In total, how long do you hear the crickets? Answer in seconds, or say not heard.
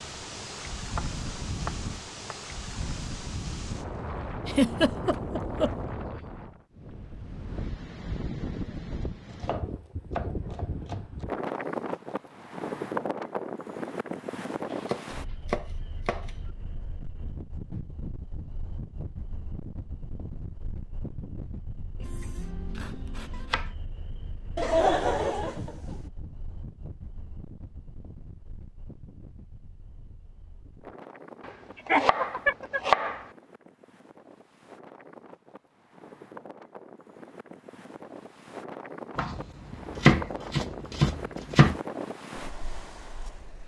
not heard.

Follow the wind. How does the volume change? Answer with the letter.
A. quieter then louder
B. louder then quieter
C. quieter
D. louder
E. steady
A.